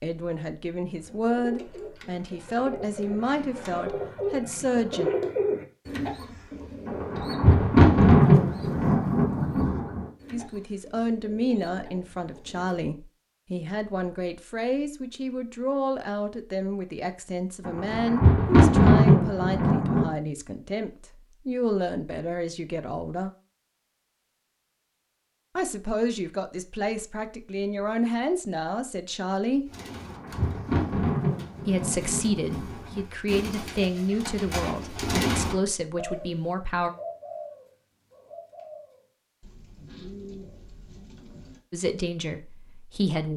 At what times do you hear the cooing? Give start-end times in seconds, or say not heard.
0.9-12.8, 29.6-41.6.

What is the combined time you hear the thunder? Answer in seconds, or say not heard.
9 s.